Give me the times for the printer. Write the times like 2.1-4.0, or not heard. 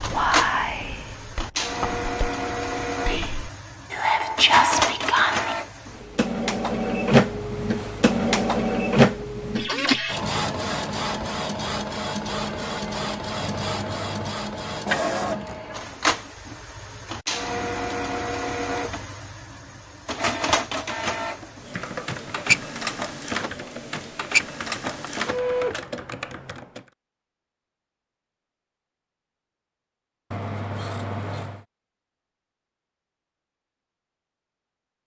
0.0-25.9.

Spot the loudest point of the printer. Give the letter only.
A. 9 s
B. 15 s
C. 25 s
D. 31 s
A.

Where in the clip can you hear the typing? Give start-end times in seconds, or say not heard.
21.4-26.9.